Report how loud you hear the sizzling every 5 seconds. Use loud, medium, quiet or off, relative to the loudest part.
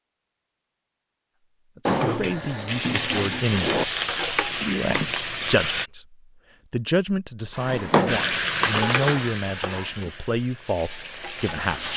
loud, loud, medium.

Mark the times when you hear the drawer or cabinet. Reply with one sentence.
You can hear the drawer or cabinet from 1.9 to 3.9 s and from 7.5 to 9.8 s.